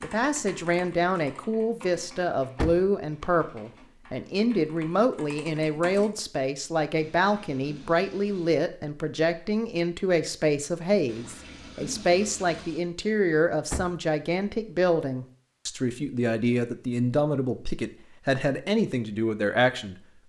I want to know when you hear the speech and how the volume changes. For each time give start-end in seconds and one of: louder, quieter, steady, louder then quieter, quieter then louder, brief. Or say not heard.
0.0-19.9 steady.